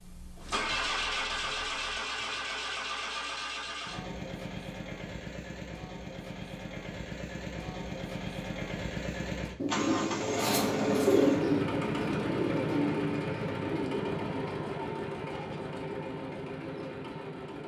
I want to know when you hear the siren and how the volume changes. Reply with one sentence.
The siren can't be heard in this clip.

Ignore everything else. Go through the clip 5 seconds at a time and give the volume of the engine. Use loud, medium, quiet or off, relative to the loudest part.
loud, medium, loud, medium.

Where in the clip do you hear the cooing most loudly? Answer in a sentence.
The volume of the cooing peaks at 11 seconds.